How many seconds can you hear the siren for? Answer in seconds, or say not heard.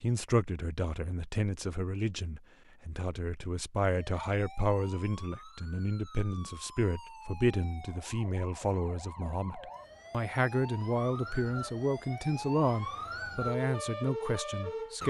11 s.